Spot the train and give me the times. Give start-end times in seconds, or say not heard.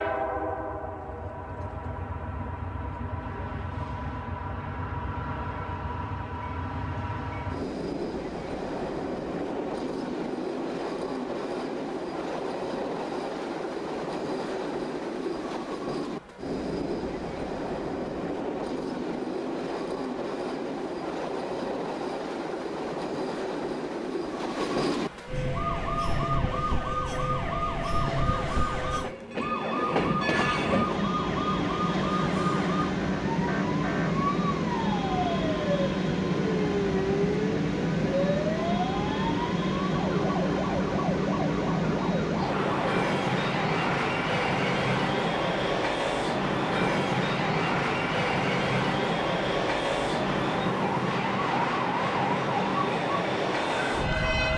0.0-54.5.